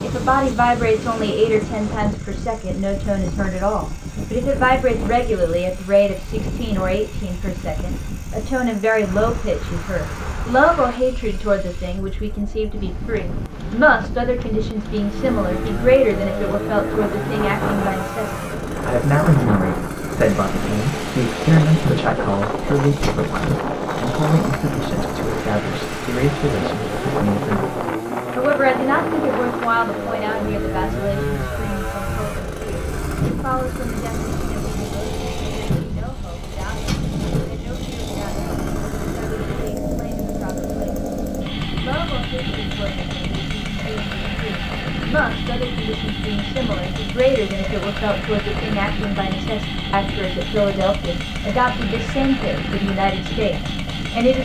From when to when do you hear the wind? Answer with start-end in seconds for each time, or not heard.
0.0-54.2.